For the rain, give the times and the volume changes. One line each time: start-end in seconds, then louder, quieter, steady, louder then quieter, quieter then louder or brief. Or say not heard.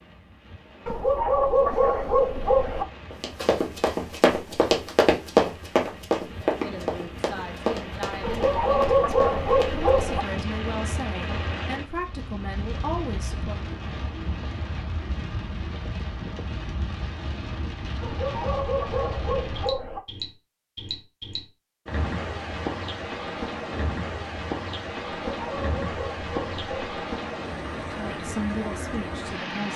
0.0-29.7 louder.